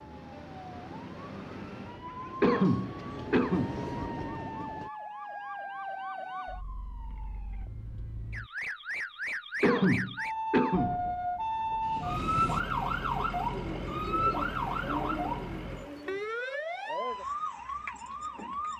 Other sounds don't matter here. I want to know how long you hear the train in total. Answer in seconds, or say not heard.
7 s.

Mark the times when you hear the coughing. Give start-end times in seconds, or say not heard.
2.4-3.8, 9.6-11.0.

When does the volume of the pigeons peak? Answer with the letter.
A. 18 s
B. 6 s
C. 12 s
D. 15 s
D.